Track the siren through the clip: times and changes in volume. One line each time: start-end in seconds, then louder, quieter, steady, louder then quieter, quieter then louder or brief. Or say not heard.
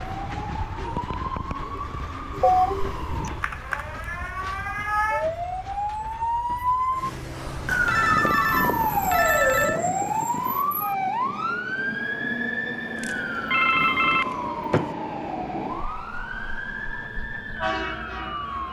0.0-18.6 louder then quieter.